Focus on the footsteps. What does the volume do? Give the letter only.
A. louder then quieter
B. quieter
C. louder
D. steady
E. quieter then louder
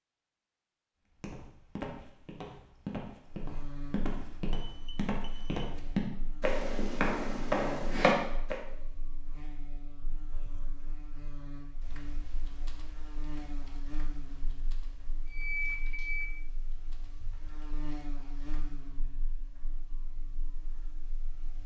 C.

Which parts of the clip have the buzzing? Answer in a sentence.
The buzzing can be heard from 3.2 to 21.6 s.